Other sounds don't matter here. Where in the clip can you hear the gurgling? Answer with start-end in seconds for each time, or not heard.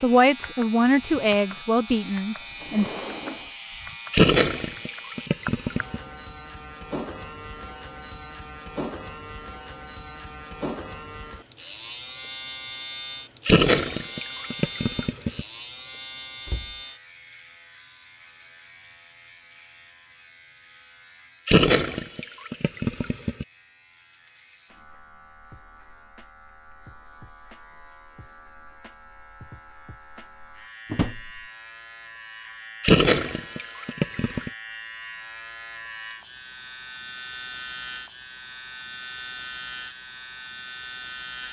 4.1-6.0, 13.4-15.4, 21.4-23.4, 32.8-34.5.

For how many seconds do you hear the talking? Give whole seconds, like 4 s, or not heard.
3 s.